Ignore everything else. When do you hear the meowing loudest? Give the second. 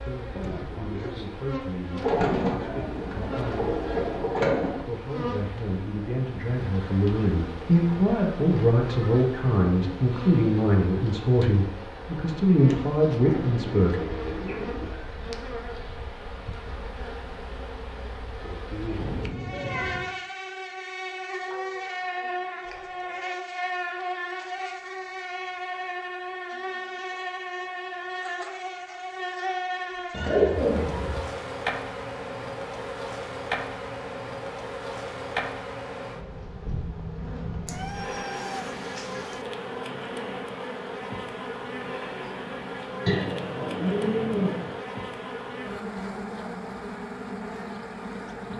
20 s.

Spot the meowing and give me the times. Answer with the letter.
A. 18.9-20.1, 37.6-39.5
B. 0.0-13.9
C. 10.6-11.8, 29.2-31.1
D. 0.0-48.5
A.